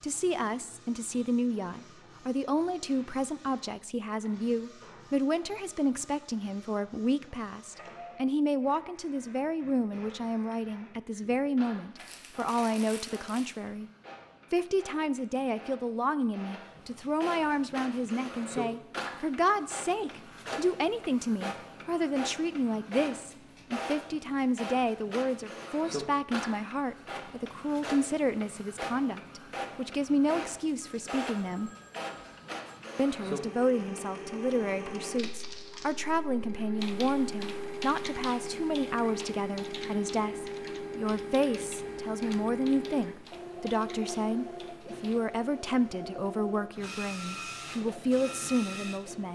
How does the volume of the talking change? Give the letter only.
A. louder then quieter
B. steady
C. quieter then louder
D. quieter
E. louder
B.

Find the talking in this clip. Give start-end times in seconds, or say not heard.
0.0-13.9, 14.5-31.7, 33.0-49.3.